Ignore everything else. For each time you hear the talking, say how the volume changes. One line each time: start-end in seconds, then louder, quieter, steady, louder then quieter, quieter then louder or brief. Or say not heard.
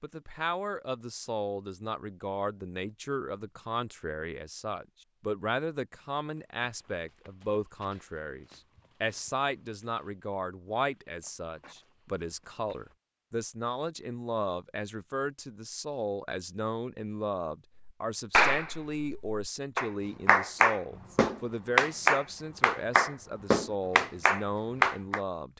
0.0-25.5 steady.